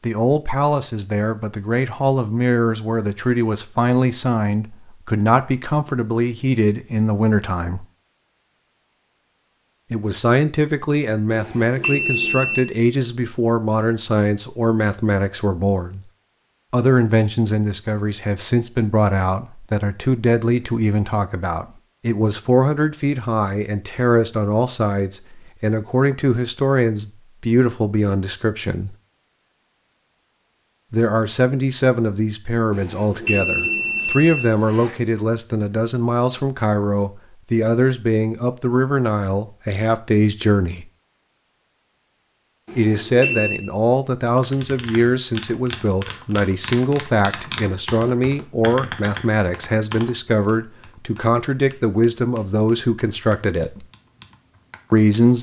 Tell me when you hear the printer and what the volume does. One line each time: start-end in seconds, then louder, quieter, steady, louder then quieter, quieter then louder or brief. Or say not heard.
not heard.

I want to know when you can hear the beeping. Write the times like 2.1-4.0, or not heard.
11.3-12.7, 32.7-34.9, 42.6-43.6.